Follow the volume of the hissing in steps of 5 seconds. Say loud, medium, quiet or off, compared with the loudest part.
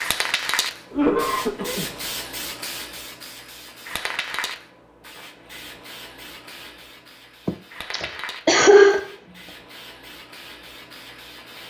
loud, medium, medium.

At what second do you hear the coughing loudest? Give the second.
9 s.